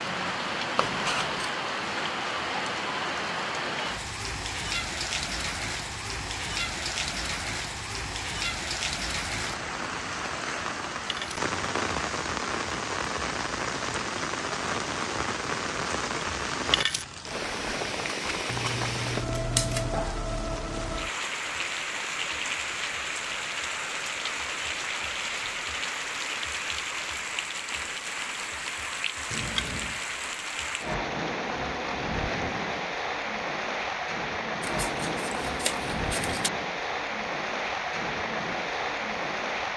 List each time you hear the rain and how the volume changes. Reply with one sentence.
The rain can be heard from 0.0 to 39.7 s, at a steady volume.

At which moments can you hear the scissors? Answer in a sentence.
The scissors can be heard from 0.8 to 1.5 s, from 18.4 to 19.9 s and from 34.6 to 36.5 s.